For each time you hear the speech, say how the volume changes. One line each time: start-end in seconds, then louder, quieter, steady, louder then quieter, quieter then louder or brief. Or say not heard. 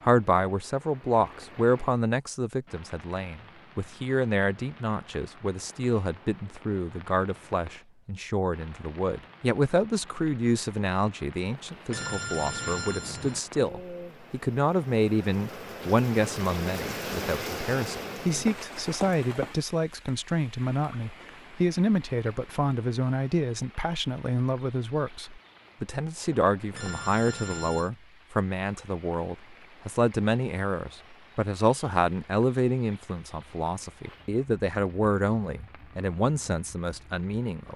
0.0-37.7 steady.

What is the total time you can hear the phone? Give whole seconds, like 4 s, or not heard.
3 s.